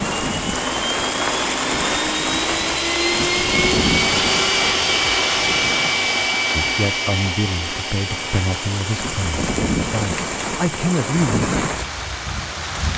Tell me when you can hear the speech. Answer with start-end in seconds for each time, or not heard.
6.5-11.5.